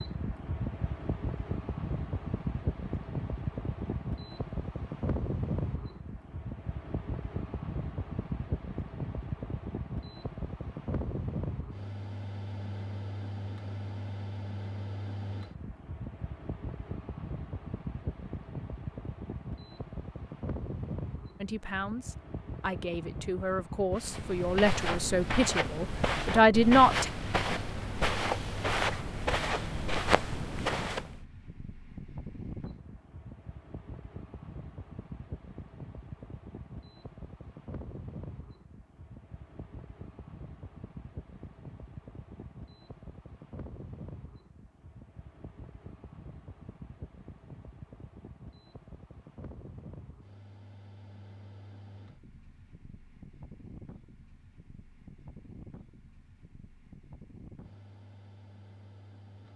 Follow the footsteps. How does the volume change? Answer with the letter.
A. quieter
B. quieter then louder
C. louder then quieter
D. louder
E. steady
E.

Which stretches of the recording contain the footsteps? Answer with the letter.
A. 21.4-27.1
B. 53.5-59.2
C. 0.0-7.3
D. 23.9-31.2
D.